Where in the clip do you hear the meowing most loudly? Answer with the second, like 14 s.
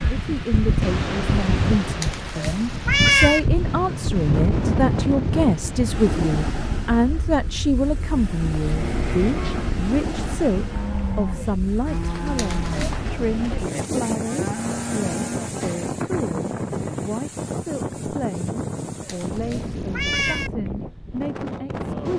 3 s.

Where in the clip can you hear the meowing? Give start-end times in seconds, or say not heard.
2.0-3.4, 12.3-12.9, 19.1-20.5.